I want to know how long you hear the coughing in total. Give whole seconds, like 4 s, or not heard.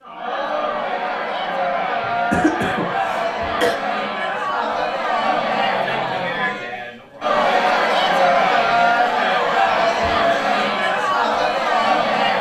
2 s.